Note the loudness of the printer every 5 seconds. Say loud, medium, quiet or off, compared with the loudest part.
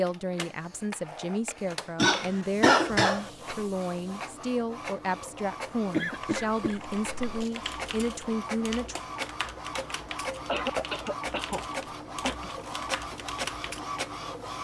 medium, loud, loud.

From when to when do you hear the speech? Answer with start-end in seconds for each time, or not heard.
0.0-8.9.